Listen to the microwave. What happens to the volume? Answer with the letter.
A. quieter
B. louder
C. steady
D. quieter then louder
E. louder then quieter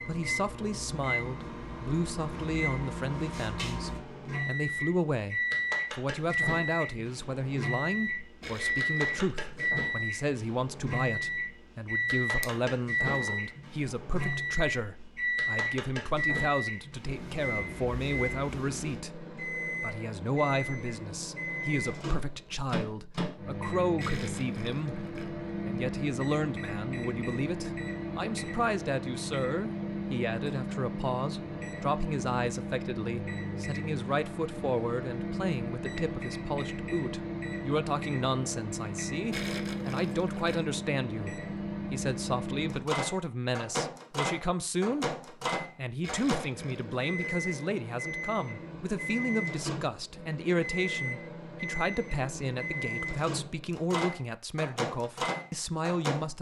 C.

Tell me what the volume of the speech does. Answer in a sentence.
The loudness of the speech stays about the same.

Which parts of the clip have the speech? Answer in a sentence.
You can hear the speech from 0.1 to 56.3 s.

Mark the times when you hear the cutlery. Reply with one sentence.
The cutlery can't be heard in this clip.